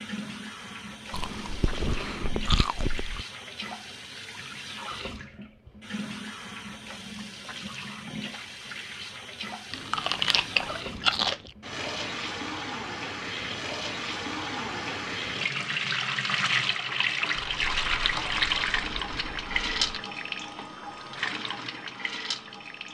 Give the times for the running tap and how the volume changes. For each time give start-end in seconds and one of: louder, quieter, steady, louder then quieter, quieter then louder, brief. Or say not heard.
0.0-22.8 louder.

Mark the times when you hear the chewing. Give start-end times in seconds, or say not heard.
1.1-3.2, 9.7-11.3, 17.4-20.0.